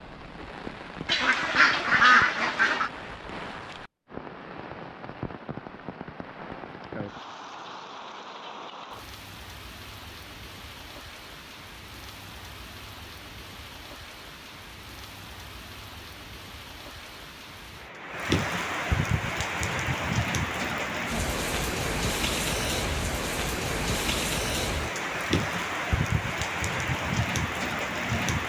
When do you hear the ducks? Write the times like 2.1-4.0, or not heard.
1.1-2.9.